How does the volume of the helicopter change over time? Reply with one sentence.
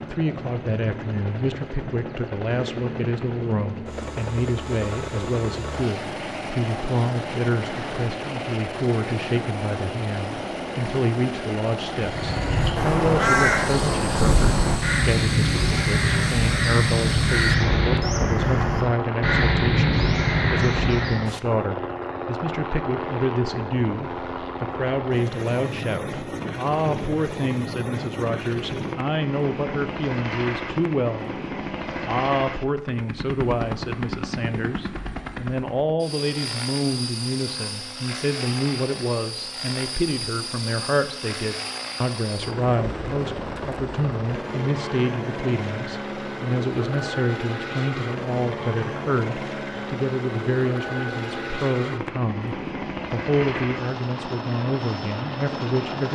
The volume of the helicopter stays about the same.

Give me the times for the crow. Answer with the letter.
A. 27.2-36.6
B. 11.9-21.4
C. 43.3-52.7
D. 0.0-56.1
B.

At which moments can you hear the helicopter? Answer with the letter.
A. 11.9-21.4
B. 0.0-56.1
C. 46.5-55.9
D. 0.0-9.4
B.